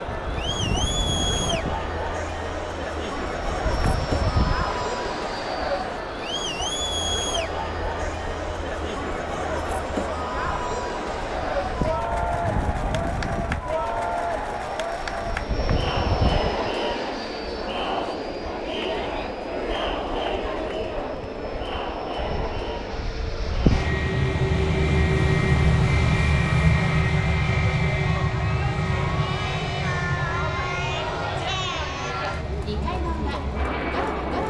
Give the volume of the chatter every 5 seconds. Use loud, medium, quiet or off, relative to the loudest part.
loud, loud, loud, loud, loud, medium, loud.